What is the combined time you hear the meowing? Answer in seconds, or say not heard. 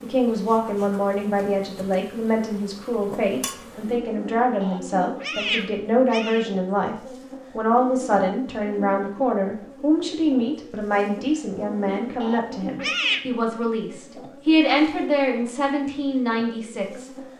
3 s.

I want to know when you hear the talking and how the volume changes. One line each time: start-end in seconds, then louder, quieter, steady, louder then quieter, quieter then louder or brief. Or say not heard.
0.0-17.1 steady.